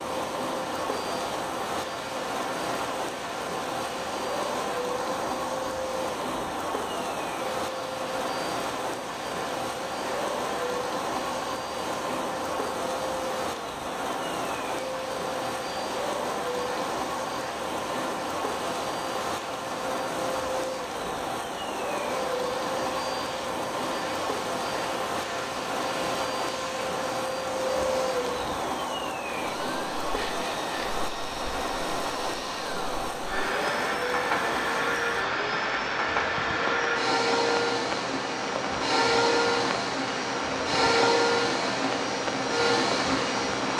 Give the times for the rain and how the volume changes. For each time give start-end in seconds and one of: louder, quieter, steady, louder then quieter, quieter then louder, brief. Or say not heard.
0.0-43.7 steady.